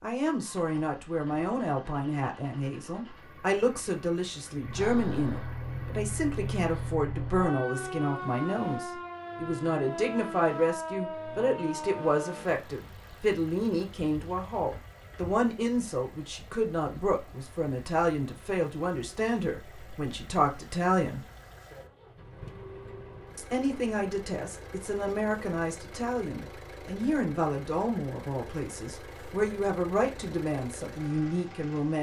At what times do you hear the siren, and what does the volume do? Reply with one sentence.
The siren can be heard from 4.5 to 12.5 s, at a steady volume.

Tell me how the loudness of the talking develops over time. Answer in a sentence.
The loudness of the talking stays about the same.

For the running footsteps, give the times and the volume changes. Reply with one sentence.
The running footsteps can't be heard in this clip.